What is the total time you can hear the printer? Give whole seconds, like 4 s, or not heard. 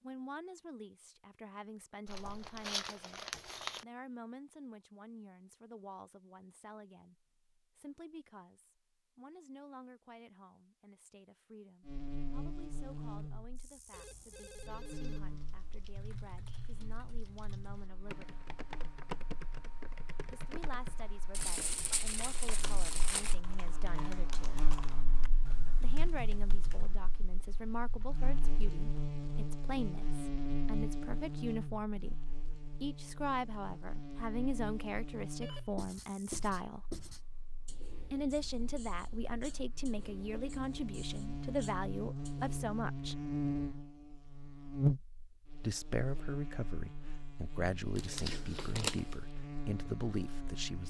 not heard.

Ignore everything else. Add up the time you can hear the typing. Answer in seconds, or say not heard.
12 s.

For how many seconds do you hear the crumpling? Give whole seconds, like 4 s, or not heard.
5 s.